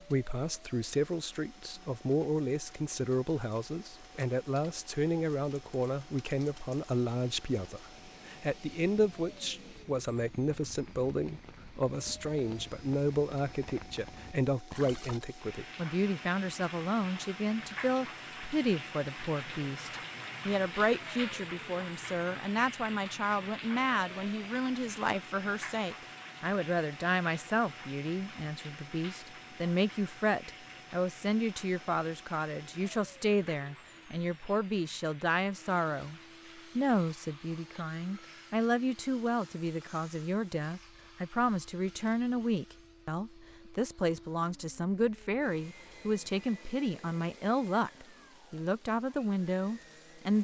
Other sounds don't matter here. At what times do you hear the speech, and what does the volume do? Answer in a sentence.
You can hear the speech from 0.1 to 50.4 s, at a steady volume.